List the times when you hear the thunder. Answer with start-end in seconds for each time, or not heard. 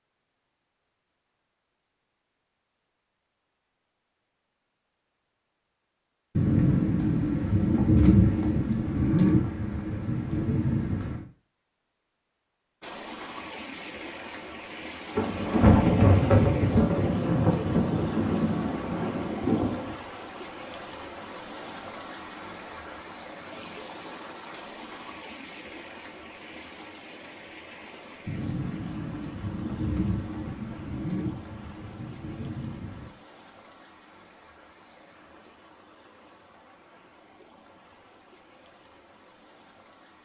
6.3-11.2, 15.2-19.9, 28.2-33.1.